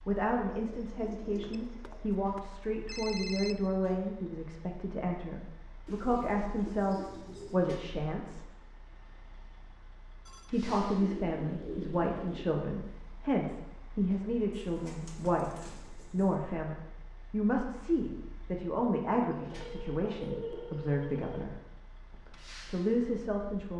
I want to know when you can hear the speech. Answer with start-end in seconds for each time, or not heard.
0.1-8.4, 10.5-23.7.